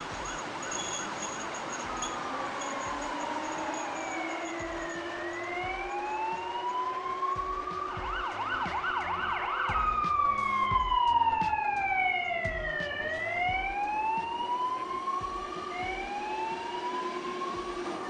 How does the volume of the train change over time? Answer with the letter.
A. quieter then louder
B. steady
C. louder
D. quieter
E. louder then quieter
A.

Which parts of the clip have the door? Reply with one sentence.
The door can't be heard in this clip.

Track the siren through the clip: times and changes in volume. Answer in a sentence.
The siren can be heard from 0.0 to 18.0 s, getting louder then quieter.